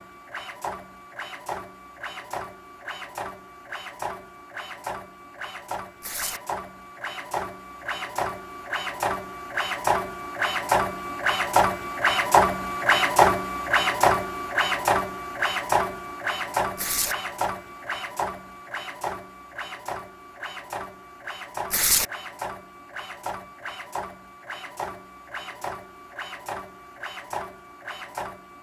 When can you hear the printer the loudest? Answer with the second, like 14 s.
13 s.